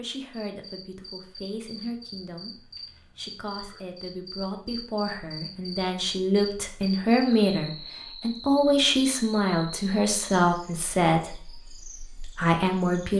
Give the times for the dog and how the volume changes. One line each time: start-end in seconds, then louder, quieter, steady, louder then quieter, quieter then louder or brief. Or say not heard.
not heard.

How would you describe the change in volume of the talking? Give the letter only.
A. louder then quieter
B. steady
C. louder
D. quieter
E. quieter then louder
C.